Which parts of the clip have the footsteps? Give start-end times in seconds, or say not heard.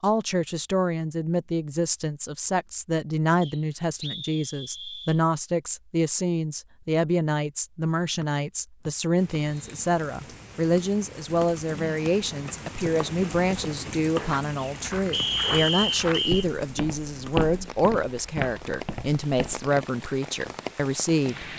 12.8-19.7.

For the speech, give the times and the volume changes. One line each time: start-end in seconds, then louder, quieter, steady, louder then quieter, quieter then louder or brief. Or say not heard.
0.0-21.5 steady.